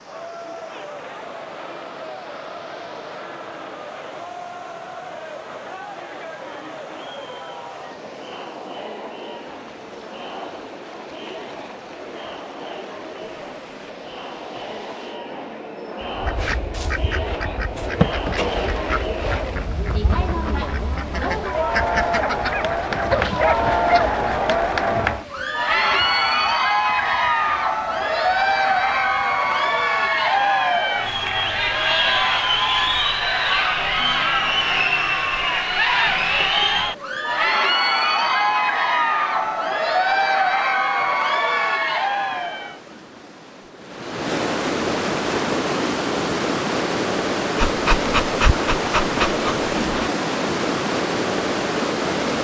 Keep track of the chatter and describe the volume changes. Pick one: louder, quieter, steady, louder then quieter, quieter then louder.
louder.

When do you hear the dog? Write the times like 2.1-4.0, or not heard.
22.2-24.1, 47.5-50.1.